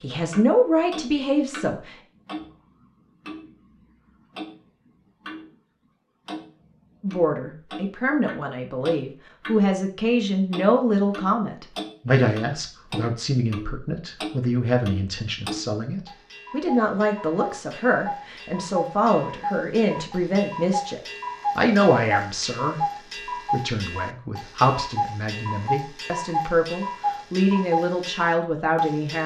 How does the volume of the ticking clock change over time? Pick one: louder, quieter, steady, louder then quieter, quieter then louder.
louder.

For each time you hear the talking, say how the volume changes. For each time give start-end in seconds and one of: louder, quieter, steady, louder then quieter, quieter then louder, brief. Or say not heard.
0.0-1.9 brief
7.0-29.2 steady.